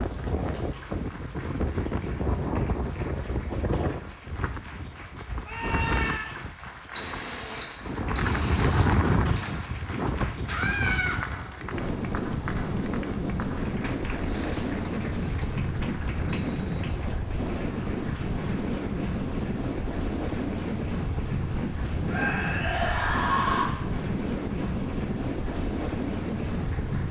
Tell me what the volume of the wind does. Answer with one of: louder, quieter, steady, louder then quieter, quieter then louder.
steady.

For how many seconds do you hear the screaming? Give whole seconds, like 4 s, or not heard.
3 s.